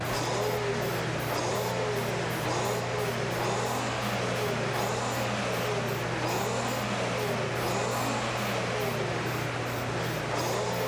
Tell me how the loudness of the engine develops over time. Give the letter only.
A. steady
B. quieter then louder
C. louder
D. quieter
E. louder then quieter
A.